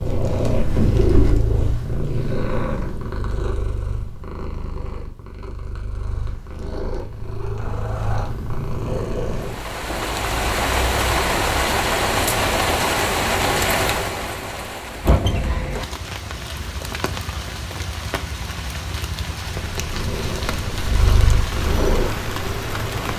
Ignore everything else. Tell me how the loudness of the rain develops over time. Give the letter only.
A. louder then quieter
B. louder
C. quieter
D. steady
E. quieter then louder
C.